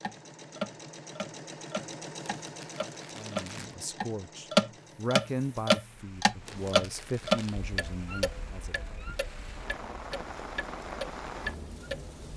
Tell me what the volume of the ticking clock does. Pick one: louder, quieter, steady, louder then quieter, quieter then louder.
louder then quieter.